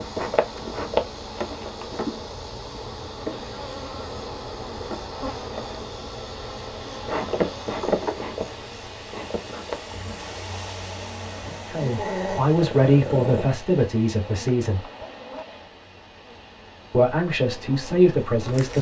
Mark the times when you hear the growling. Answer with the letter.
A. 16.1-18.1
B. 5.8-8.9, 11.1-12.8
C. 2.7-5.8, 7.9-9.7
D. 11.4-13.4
D.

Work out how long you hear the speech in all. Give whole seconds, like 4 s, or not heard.
5 s.